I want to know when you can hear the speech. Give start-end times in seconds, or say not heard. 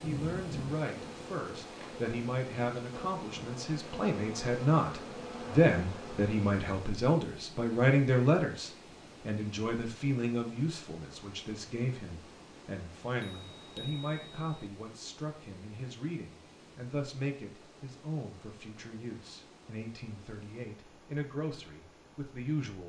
0.0-22.8.